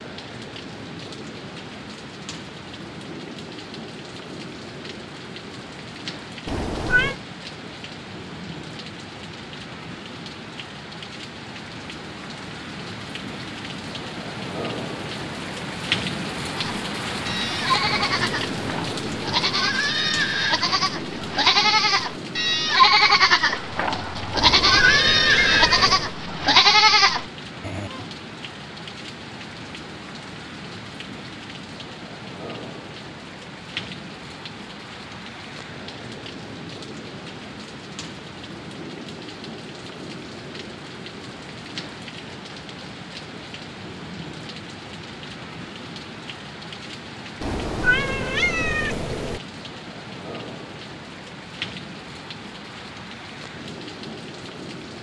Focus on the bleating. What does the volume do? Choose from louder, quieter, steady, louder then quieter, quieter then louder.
louder.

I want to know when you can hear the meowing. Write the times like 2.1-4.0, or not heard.
6.5-7.2, 24.4-26.1, 47.4-49.4.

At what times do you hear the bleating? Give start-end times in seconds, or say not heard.
16.6-28.1.